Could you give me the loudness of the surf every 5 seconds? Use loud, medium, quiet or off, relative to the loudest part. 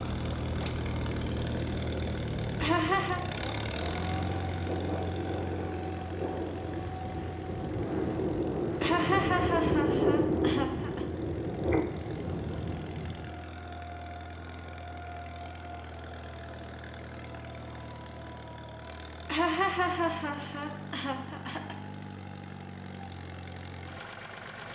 medium, loud, loud, off, off.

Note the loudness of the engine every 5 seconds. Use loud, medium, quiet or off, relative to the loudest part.
loud, medium, medium, medium, medium.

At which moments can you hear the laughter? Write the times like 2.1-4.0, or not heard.
2.6-3.2, 8.8-11.1, 19.2-21.8.